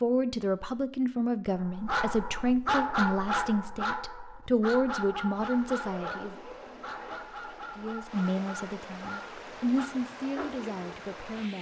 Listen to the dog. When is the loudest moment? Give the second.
3 s.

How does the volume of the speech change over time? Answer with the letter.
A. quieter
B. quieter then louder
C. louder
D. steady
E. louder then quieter
A.